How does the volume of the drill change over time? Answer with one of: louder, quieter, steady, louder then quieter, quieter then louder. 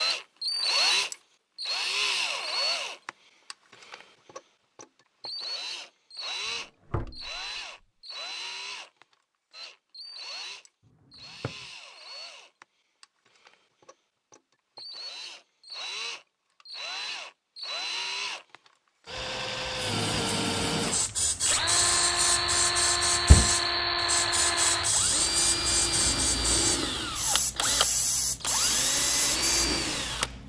quieter then louder.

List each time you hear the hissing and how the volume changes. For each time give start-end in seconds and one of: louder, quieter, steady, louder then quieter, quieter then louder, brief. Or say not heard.
19.8-30.4 steady.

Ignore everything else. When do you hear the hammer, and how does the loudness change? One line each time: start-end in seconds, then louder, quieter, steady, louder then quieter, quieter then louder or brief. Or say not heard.
not heard.